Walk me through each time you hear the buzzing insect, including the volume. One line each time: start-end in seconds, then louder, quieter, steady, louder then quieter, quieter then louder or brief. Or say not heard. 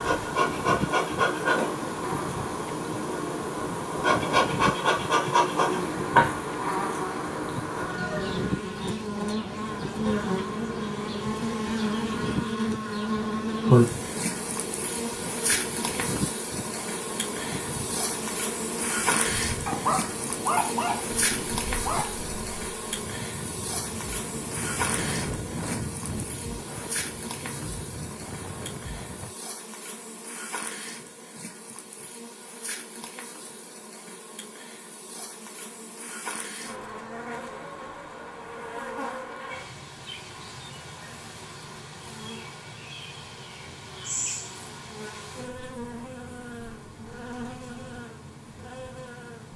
0.0-49.5 quieter.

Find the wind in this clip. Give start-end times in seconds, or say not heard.
0.0-29.4.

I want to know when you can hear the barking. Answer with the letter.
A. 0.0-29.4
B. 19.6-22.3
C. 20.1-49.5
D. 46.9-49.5
B.